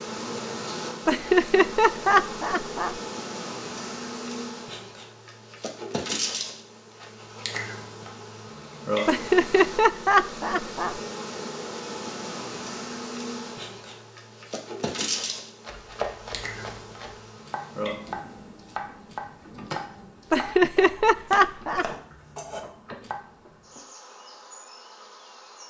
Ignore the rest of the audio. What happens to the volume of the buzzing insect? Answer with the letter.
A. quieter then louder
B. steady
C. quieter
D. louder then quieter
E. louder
C.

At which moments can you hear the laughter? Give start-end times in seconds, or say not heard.
1.1-3.0, 9.1-10.9, 20.3-21.9.